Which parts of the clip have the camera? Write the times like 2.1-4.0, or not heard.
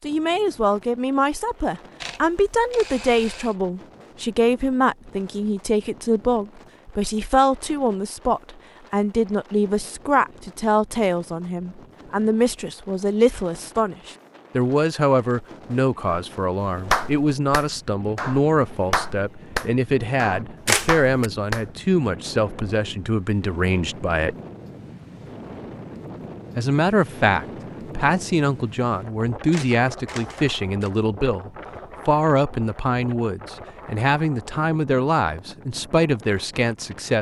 2.0-3.5, 20.6-21.3, 29.5-30.9.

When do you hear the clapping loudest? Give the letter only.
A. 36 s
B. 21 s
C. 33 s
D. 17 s
D.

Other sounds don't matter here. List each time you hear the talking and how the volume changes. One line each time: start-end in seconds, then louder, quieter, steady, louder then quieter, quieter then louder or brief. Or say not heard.
0.0-24.4 steady
26.6-37.1 steady.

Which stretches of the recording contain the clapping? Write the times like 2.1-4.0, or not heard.
16.1-21.8.